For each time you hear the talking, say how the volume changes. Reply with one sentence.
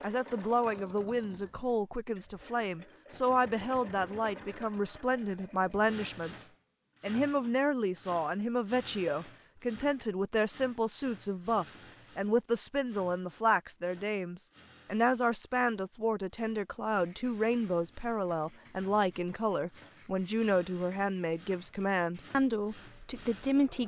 The talking can be heard from 0.0 to 23.8 s, at a steady volume.